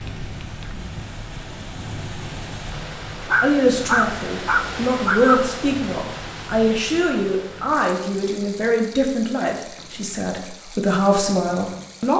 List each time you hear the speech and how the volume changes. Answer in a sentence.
The speech can be heard from 3.4 to 12.1 s, at a steady volume.